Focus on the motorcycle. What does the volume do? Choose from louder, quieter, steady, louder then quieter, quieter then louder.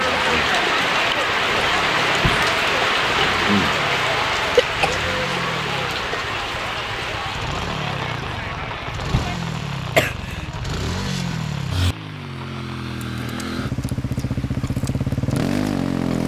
louder.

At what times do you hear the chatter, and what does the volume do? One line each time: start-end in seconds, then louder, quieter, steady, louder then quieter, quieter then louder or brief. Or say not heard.
0.0-9.4 quieter.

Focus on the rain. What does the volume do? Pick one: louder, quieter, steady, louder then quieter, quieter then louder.
quieter.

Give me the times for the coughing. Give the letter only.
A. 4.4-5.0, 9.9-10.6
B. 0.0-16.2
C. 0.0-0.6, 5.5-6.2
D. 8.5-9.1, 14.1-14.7
A.